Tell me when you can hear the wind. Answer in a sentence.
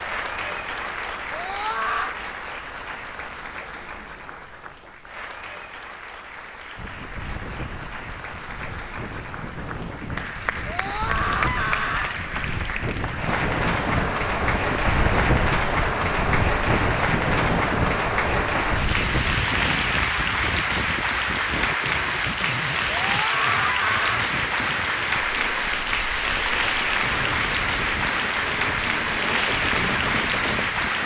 You can hear the wind from 6.8 to 31.0 s.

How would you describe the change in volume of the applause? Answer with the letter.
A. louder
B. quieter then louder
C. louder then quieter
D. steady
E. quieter
A.